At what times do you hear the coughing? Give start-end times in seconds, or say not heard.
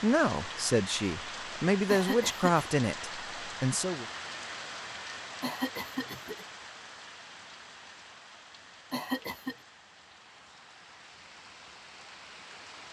1.9-2.6, 5.4-6.5, 8.9-9.6.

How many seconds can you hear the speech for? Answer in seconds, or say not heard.
4 s.